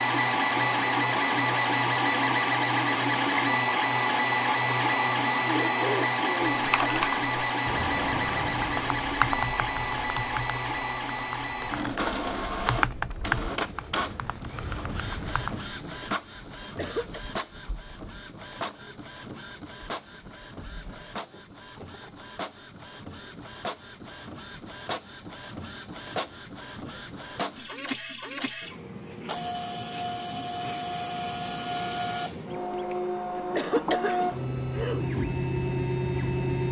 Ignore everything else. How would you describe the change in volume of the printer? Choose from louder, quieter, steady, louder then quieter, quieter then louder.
quieter then louder.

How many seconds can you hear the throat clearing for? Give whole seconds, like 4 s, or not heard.
4 s.